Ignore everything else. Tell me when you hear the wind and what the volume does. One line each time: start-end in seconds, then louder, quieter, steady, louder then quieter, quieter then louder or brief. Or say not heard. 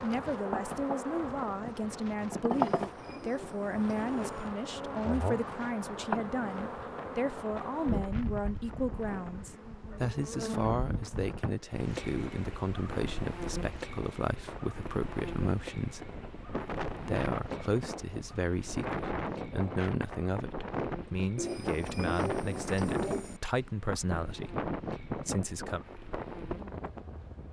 0.0-27.4 louder.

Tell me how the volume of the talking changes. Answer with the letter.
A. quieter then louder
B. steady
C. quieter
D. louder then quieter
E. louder
B.